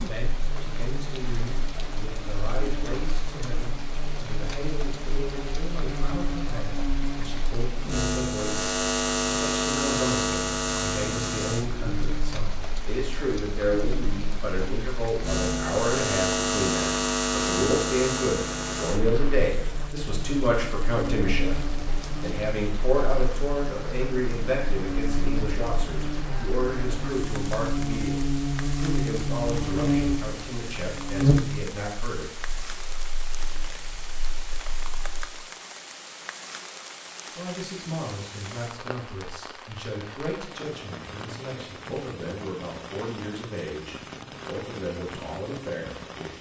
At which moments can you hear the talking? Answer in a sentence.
The talking can be heard from 0.0 to 32.3 s and from 37.4 to 46.3 s.